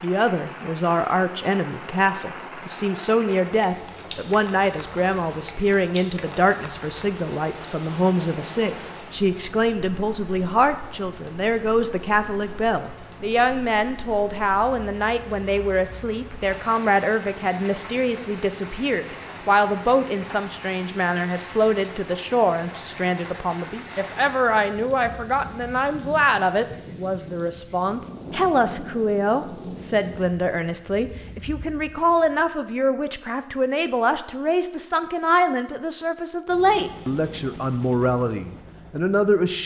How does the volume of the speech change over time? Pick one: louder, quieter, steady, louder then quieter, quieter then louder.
steady.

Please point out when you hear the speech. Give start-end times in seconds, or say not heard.
0.0-39.6.